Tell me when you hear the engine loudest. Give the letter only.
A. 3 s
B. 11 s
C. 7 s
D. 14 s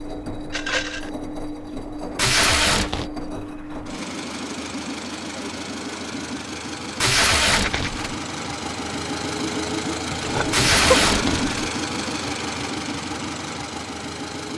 B.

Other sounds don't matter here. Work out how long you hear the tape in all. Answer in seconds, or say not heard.
3 s.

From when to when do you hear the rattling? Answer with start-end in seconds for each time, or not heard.
0.5-1.1, 7.5-7.9, 10.2-10.9.